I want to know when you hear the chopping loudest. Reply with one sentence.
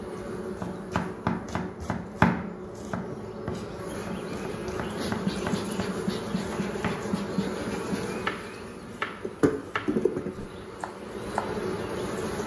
The loudest moment of the chopping is at 2 seconds.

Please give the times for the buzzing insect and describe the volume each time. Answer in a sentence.
You can hear the buzzing insect from 0.0 to 12.4 s, getting louder.